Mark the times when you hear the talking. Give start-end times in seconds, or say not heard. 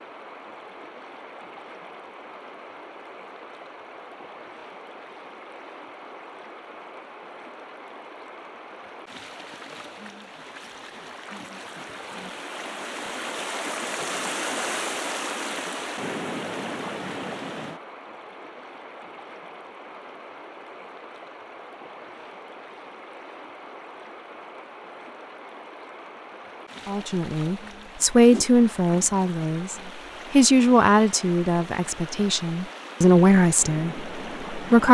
26.9-34.9.